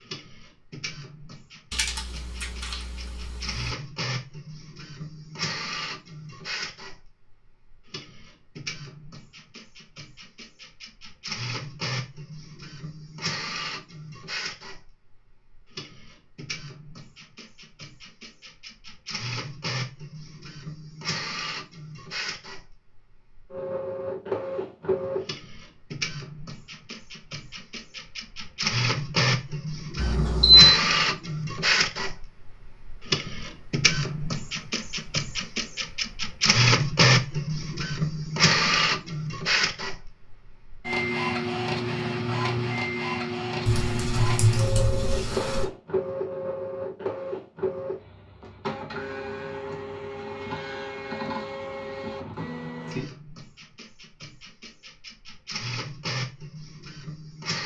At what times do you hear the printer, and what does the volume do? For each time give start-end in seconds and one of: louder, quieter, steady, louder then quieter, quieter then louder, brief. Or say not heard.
0.0-57.6 louder then quieter.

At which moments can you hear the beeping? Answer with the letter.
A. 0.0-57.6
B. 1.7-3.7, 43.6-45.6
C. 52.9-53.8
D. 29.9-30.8
D.